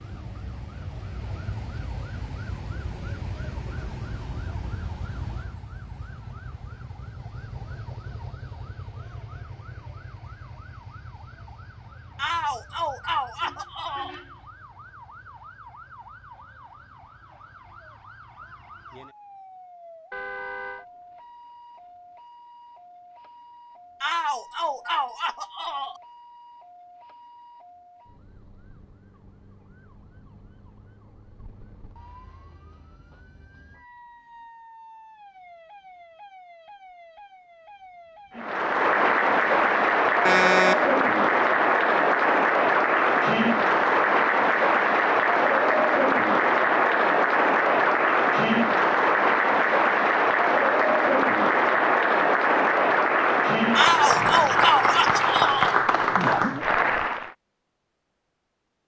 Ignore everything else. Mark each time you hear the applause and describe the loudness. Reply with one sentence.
The applause can be heard from 38.4 to 57.4 s, at a steady volume.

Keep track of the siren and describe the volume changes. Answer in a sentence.
The volume of the siren goes down.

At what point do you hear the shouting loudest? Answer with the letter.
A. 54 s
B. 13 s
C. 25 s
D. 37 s
A.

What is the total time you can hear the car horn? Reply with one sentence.
You can hear the car horn for 2 seconds altogether.